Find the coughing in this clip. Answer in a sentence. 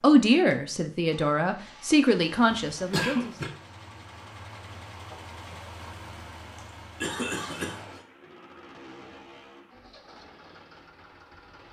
The coughing can be heard from 2.7 to 3.5 s and from 6.5 to 8.0 s.